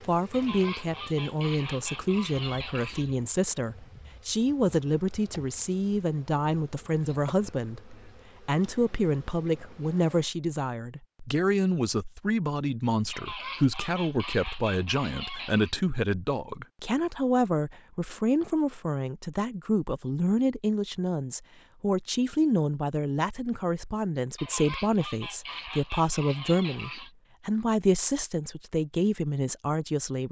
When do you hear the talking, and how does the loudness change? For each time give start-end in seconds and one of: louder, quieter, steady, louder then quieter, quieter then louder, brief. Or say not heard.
0.1-30.2 steady.